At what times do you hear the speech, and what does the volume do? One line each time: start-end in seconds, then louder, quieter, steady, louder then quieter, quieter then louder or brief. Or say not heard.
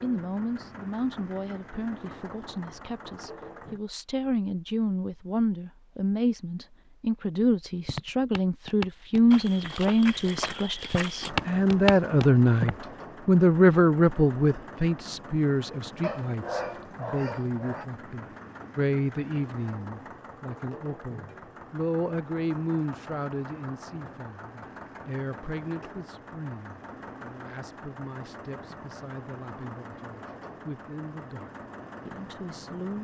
0.0-32.9 louder then quieter.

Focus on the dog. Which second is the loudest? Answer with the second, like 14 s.
17 s.